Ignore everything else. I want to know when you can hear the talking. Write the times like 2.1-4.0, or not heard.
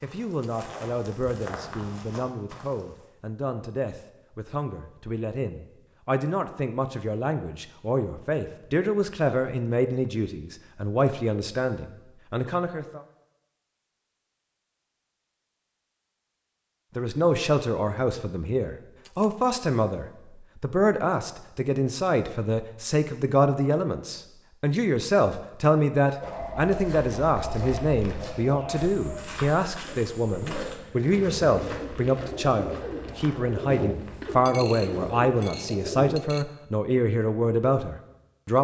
0.0-13.0, 16.9-38.5.